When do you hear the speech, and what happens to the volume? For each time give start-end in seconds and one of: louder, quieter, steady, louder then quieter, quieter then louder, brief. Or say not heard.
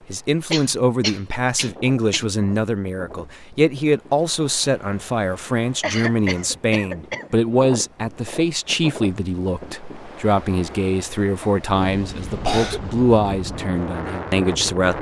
0.1-14.9 steady.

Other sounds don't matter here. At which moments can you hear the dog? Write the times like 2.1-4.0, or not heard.
not heard.